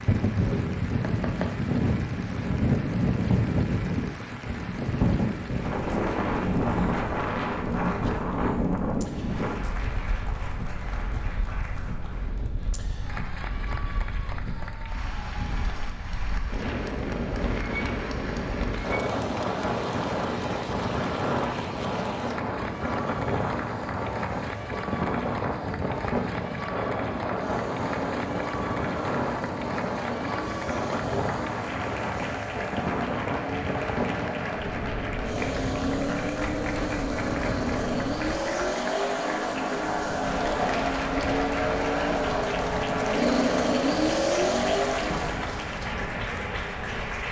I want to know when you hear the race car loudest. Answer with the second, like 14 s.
44 s.